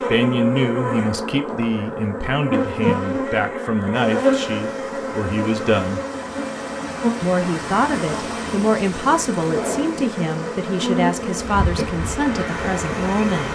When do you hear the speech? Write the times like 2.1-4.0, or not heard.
0.0-6.0, 7.2-13.5.